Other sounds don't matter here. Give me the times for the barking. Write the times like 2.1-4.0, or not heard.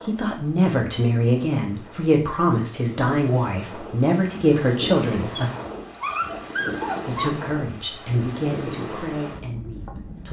5.3-7.3.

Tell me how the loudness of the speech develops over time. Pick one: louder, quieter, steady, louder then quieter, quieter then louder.
quieter.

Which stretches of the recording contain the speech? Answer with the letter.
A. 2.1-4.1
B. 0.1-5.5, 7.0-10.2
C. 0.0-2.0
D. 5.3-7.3
B.